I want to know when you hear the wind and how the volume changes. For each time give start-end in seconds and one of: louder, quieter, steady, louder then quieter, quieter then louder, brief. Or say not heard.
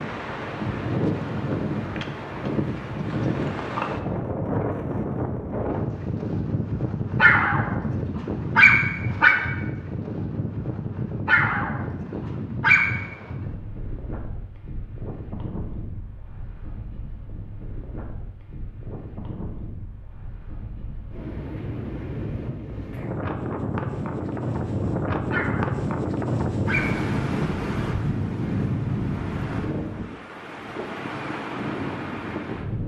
0.0-32.8 quieter then louder.